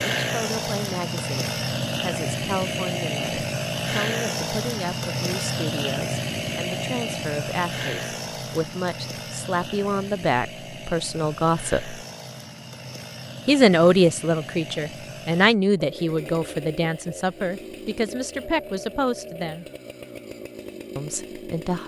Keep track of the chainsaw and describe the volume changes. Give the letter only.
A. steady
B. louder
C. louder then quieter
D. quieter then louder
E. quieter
E.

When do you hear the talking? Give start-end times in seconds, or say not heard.
0.2-12.0, 13.4-19.6, 20.9-21.8.